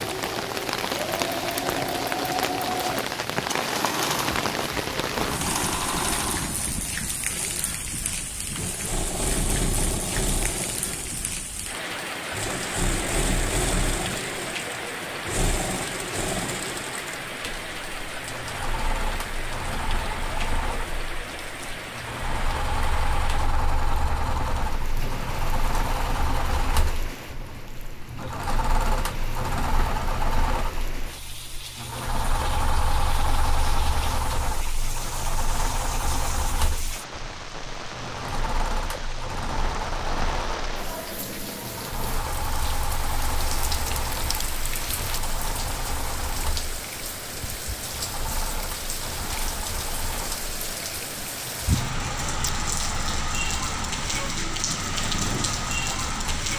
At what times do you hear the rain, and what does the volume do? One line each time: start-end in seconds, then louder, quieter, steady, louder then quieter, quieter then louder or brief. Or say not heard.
0.0-56.5 quieter then louder.